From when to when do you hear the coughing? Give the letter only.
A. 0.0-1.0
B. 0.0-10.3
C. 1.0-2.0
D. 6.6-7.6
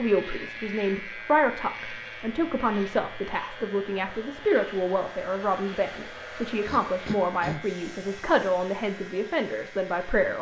D.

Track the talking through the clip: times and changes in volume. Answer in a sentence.
You can hear the talking from 0.0 to 10.3 s, at a steady volume.